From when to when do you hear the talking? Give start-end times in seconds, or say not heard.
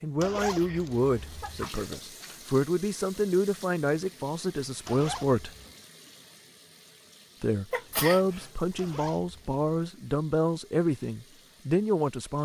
0.0-5.5, 7.4-12.4.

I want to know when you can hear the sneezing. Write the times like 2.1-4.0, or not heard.
0.4-2.0, 7.7-8.5.